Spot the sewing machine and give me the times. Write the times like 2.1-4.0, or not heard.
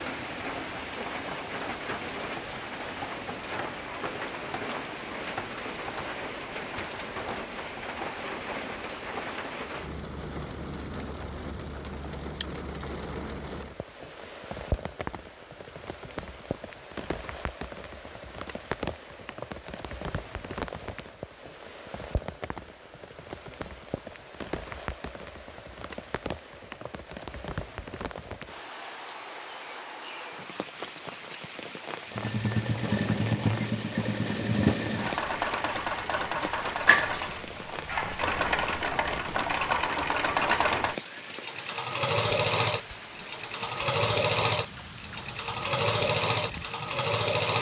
32.1-47.5.